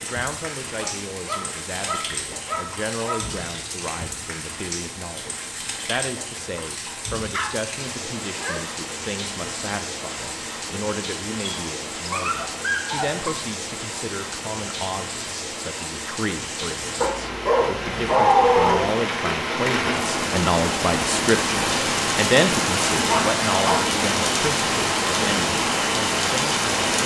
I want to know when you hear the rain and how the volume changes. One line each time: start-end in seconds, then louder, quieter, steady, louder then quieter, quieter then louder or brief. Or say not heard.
0.0-27.0 louder.